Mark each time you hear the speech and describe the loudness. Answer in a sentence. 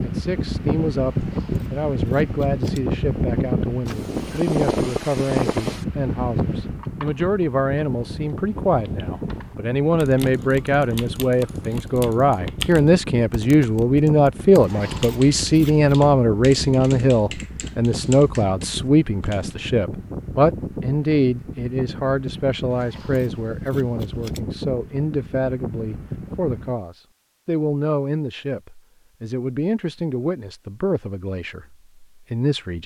You can hear the speech from 0.0 to 32.8 s, getting louder then quieter.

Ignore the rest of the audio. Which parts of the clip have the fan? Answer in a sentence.
The fan can be heard from 0.0 to 26.8 s.